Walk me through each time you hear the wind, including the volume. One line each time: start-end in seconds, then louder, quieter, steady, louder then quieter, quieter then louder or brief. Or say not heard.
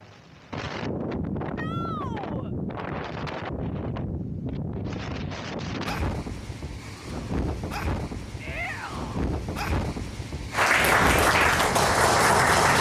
0.0-12.7 steady.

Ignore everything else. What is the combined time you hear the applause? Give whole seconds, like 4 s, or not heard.
2 s.